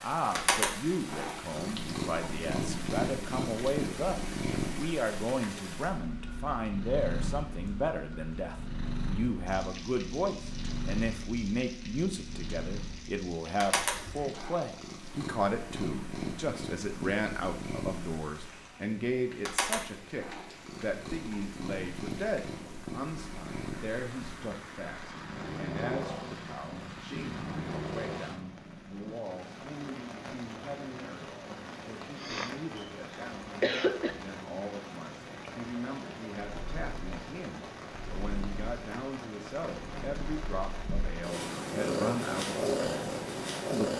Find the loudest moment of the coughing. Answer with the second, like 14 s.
34 s.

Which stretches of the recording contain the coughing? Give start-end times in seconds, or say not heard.
13.8-14.3, 32.1-34.1.